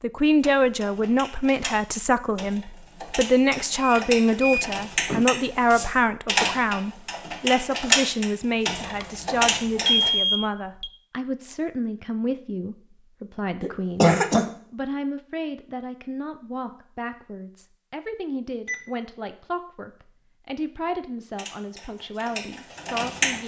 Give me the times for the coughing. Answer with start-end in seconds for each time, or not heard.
13.6-14.4.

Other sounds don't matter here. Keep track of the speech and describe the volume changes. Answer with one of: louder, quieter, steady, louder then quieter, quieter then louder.
quieter.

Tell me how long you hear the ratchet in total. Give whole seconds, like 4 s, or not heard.
12 s.